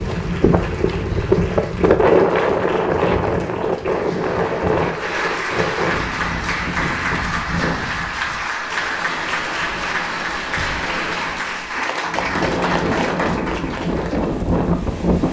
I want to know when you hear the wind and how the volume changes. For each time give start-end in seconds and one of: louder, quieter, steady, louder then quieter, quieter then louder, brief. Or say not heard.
0.0-15.2 quieter then louder.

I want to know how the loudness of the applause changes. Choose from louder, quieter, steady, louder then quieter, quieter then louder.
louder.